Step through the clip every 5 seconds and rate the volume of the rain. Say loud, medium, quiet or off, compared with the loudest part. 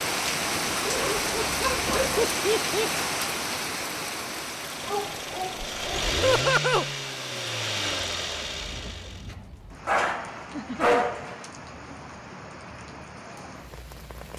loud, quiet, quiet.